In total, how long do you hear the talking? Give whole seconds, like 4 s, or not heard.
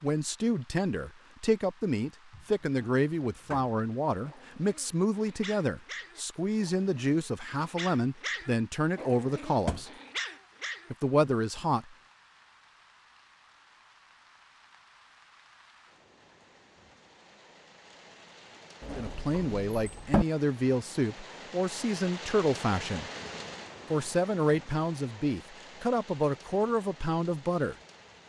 19 s.